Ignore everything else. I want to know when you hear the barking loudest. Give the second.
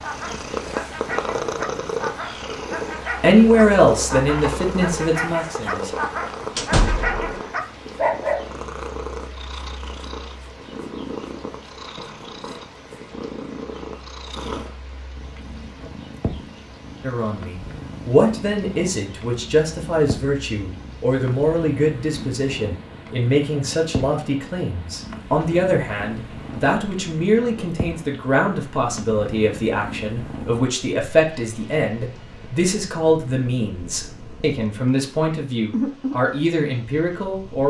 8 s.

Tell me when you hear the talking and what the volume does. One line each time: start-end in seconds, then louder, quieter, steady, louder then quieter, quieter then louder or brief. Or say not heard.
3.2-6.0 brief
17.0-37.6 steady.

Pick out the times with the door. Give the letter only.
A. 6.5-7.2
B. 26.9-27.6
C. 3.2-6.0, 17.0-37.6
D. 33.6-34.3
A.